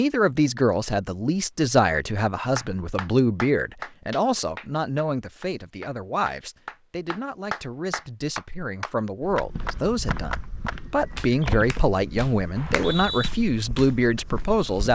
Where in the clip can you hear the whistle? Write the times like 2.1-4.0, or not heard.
12.6-13.3.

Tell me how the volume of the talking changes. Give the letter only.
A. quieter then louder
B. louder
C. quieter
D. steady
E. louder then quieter
A.